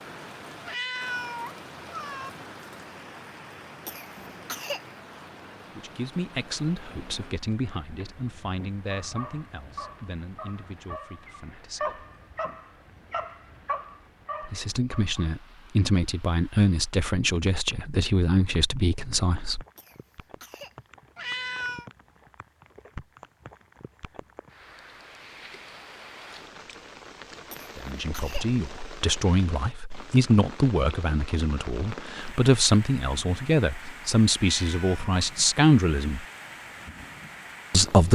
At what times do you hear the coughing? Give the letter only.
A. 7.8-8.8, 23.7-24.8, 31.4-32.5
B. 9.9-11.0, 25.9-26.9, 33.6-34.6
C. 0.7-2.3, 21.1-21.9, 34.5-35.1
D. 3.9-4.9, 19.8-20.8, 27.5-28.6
D.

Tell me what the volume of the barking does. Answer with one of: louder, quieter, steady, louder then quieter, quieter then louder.
louder then quieter.